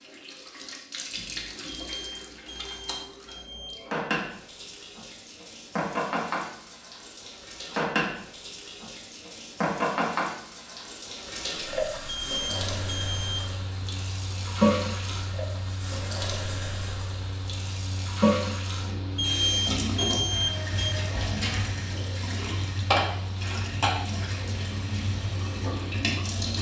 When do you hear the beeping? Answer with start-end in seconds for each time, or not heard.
1.6-3.8, 12.1-13.4, 19.1-20.9.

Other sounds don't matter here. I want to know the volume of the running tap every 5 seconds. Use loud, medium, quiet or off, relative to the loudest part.
medium, loud, loud, loud, loud, loud.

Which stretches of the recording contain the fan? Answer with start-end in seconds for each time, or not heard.
12.4-26.5.